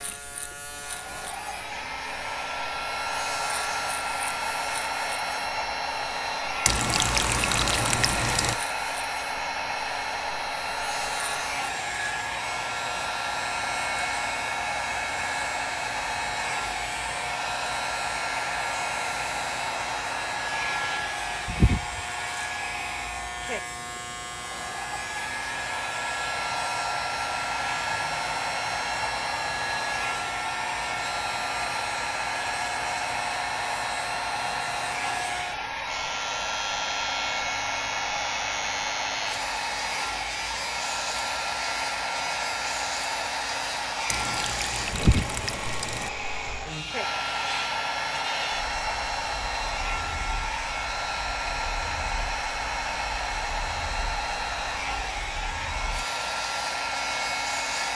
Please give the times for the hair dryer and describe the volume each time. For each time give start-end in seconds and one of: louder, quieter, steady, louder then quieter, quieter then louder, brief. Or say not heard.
0.0-57.9 steady.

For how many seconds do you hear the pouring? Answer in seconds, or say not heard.
4 s.